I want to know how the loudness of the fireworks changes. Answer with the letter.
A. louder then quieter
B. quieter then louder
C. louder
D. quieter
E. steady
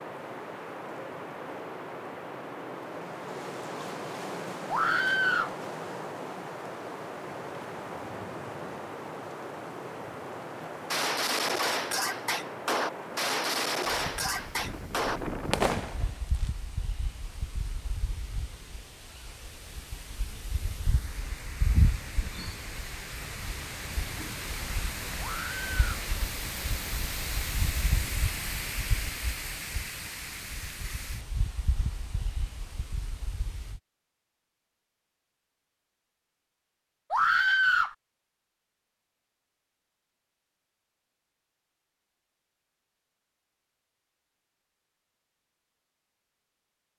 E.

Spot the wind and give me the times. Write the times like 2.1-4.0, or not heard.
0.0-33.8.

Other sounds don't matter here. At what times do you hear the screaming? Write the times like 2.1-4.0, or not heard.
4.7-5.5, 25.2-25.8, 37.1-38.0.